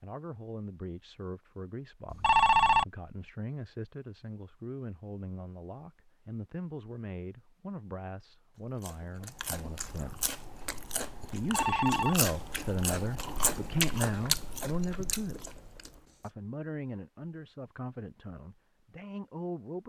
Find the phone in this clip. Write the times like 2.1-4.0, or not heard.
2.1-2.9, 11.4-12.2.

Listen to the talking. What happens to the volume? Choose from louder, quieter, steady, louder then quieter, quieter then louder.
louder then quieter.